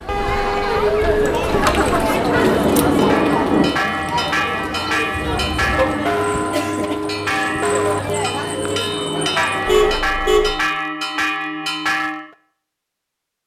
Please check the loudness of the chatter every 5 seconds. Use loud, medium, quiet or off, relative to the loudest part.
loud, medium, off.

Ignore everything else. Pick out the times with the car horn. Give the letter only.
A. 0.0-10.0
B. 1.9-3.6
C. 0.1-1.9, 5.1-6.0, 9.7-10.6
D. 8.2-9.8
C.